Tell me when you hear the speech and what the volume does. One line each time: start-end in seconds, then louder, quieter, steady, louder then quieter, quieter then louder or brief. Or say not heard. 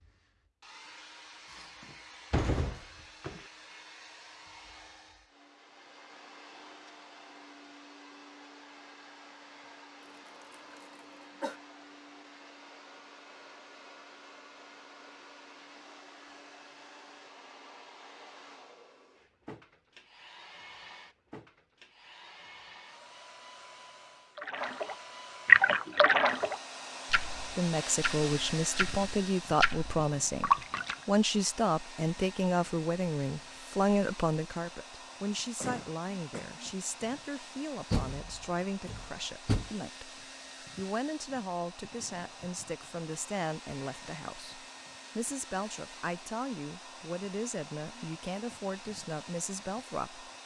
27.6-50.3 quieter.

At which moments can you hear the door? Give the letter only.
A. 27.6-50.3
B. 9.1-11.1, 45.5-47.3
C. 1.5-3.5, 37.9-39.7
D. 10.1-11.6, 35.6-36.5
C.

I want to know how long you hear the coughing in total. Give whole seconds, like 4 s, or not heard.
2 s.